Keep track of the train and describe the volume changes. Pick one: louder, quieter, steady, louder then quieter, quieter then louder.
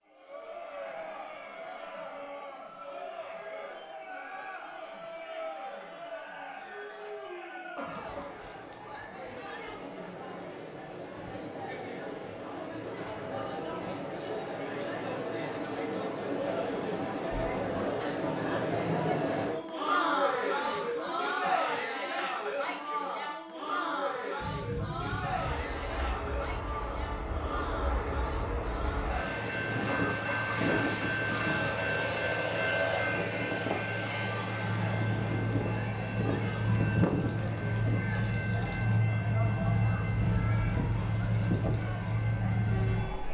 louder.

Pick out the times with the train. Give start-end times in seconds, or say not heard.
24.4-43.3.